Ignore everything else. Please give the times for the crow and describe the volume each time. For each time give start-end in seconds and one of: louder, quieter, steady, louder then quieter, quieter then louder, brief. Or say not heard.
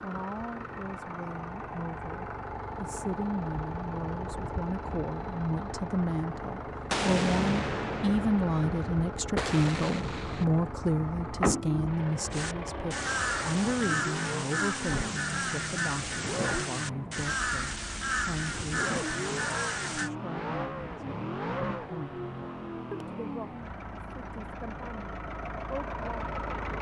12.3-20.1 steady.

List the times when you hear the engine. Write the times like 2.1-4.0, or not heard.
0.0-26.7.